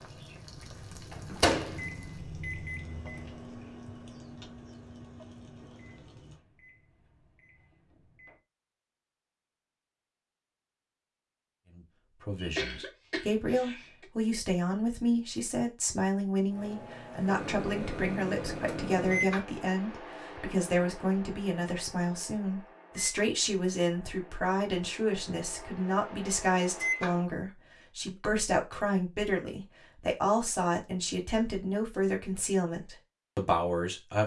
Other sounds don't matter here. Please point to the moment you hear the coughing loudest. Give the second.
13 s.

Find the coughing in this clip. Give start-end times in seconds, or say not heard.
12.3-14.1.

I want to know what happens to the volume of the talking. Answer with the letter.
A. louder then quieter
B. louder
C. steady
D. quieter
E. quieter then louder
C.